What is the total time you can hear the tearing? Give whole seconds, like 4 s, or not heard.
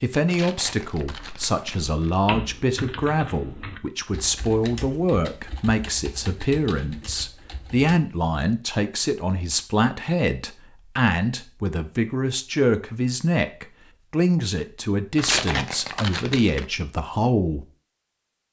3 s.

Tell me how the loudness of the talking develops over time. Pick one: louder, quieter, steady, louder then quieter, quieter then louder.
steady.